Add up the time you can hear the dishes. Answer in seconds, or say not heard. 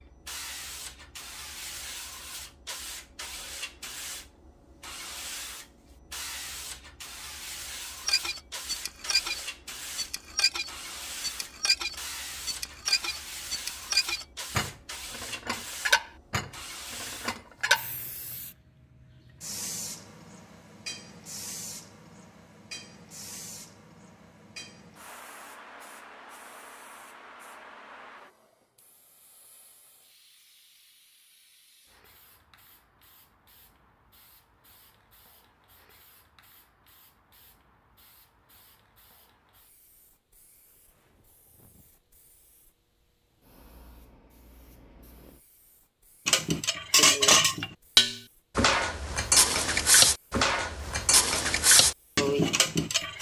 17 s.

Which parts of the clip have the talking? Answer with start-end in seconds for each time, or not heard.
not heard.